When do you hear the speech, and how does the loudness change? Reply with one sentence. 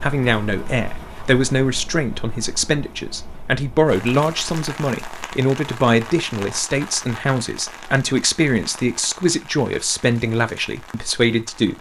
The speech can be heard from 0.0 to 11.7 s, at a steady volume.